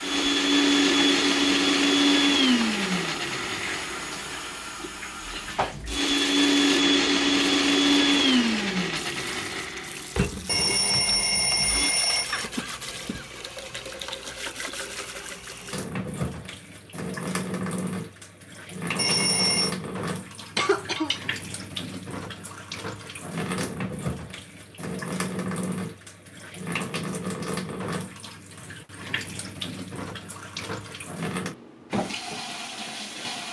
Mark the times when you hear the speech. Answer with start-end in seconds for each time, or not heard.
not heard.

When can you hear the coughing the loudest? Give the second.
21 s.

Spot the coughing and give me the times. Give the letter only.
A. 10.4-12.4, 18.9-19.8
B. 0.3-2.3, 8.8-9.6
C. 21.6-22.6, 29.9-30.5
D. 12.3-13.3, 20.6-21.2
D.